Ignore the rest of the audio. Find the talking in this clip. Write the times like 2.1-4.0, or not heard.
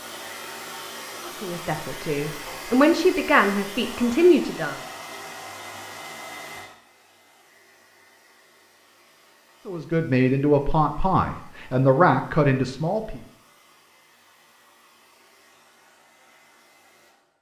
1.2-4.8, 9.7-13.2.